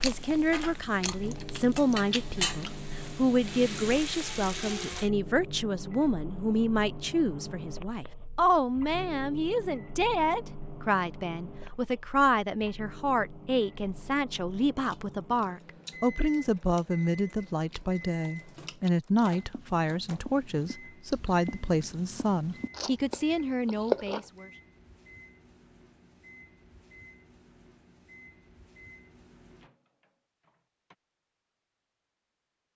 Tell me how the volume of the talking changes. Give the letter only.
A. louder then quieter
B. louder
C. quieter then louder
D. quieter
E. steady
E.